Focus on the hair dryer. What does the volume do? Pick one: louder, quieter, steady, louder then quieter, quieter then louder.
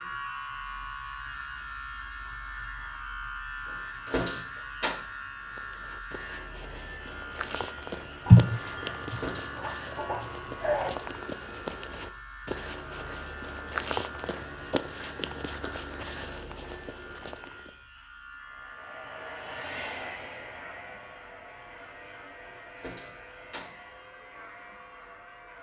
quieter.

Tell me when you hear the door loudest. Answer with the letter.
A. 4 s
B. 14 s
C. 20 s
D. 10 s
A.